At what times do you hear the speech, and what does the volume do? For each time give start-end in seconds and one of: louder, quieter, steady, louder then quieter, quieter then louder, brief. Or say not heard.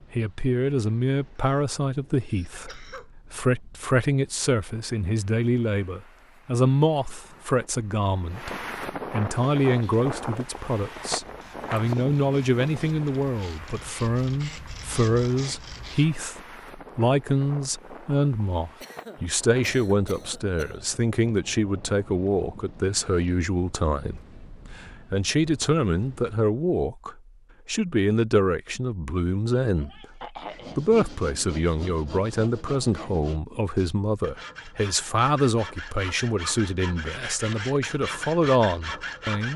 0.1-39.5 steady.